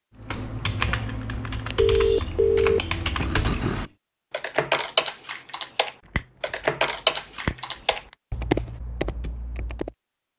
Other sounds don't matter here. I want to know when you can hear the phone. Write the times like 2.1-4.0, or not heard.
1.8-3.9.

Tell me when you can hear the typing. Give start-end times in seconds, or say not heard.
0.1-9.9.